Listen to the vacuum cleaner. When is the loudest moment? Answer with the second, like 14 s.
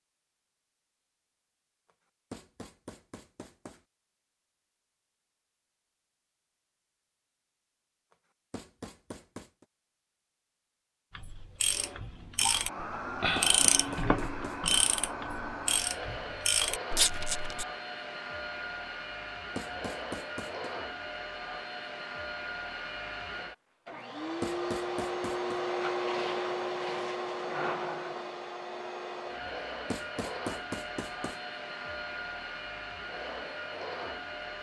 26 s.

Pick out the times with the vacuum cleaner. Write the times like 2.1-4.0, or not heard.
11.6-34.5.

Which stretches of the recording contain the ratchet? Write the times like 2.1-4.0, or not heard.
11.2-17.6.